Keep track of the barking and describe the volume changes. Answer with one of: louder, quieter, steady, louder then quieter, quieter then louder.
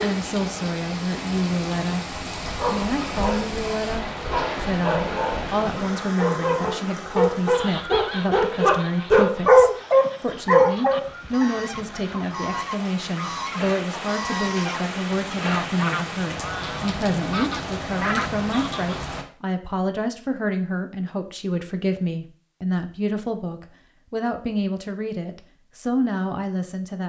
louder.